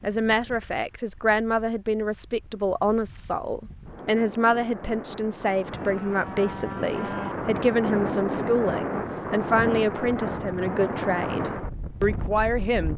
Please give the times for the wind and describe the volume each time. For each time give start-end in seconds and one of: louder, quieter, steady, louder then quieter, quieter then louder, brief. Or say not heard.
0.0-12.9 louder.